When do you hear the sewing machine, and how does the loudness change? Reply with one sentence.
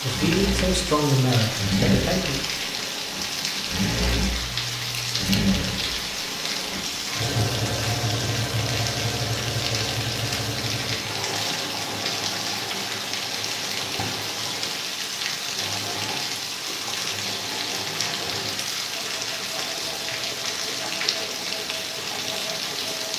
You can hear the sewing machine from 0.0 to 23.1 s, getting quieter.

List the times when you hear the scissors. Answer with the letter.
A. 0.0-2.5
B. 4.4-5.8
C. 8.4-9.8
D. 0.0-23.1
B.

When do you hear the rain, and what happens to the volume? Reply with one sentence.
You can hear the rain from 0.0 to 23.1 s, at a steady volume.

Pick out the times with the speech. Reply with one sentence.
You can hear the speech from 0.0 to 2.5 s.